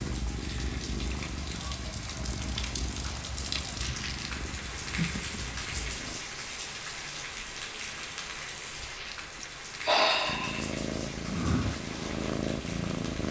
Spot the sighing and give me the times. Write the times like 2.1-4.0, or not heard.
9.3-10.8.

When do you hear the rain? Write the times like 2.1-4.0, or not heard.
0.0-13.2.